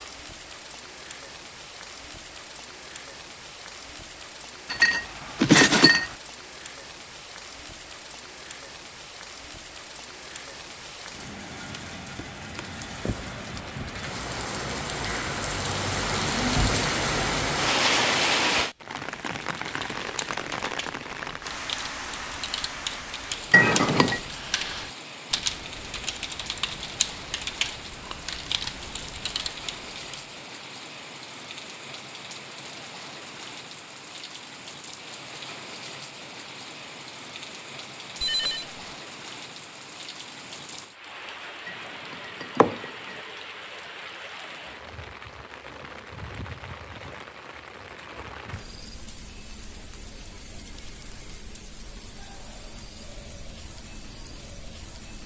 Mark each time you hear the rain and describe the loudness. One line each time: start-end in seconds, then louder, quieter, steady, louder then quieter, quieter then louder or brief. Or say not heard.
0.0-55.2 louder then quieter.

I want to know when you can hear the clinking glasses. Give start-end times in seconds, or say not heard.
4.7-6.2, 23.5-24.2, 41.6-43.1.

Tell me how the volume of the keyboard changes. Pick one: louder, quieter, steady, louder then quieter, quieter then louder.
louder.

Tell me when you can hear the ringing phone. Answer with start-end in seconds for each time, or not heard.
38.2-38.8.